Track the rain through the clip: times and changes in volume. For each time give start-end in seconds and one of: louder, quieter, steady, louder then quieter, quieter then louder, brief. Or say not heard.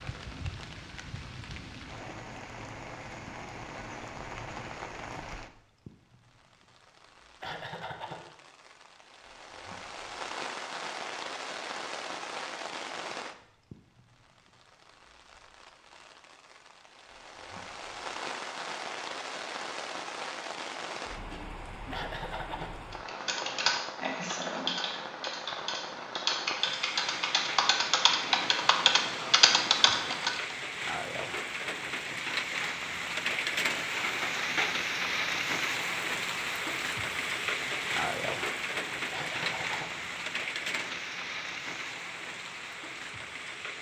0.0-43.7 louder.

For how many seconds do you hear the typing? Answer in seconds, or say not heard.
8 s.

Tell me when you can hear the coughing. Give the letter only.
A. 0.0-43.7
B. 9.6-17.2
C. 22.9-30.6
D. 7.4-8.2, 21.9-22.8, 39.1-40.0
D.